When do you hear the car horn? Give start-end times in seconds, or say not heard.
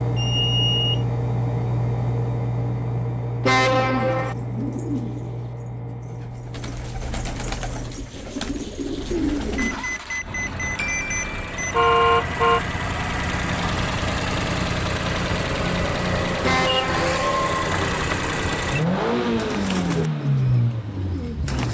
3.4-4.3, 10.8-12.6, 16.4-17.1.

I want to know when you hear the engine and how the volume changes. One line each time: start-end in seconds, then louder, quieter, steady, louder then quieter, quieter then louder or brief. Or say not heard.
0.0-21.6 quieter then louder.